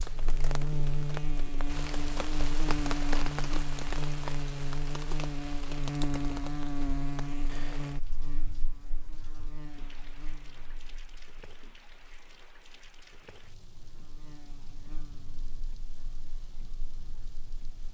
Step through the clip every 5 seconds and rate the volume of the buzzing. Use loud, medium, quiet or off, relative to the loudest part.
loud, loud, quiet, quiet.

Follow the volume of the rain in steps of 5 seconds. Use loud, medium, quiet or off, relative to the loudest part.
loud, medium, quiet, quiet.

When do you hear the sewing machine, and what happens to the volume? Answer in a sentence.
The sewing machine can't be heard in this clip.